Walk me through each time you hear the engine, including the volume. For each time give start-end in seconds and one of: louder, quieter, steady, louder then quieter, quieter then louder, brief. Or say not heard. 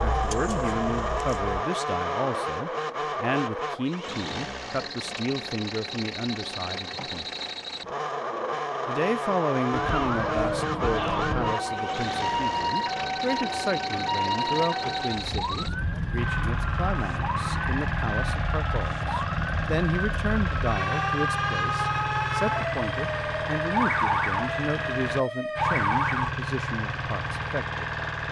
0.0-28.2 steady.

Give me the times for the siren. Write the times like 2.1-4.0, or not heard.
0.0-1.6, 9.7-26.4.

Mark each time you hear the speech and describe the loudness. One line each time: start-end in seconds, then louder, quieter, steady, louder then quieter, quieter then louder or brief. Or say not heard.
0.0-7.2 steady
8.8-28.2 steady.